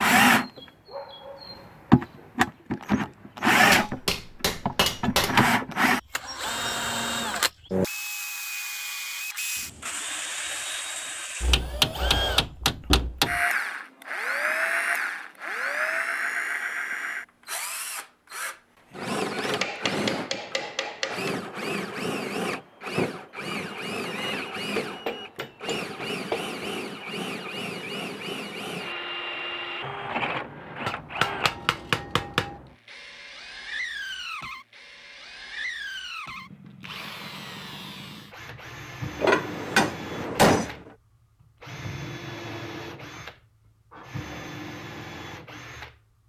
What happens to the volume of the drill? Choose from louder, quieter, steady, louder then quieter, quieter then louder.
quieter.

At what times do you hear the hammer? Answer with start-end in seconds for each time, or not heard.
3.7-5.5, 11.5-13.3, 19.6-21.3, 24.8-26.6, 30.9-32.5, 39.2-40.8.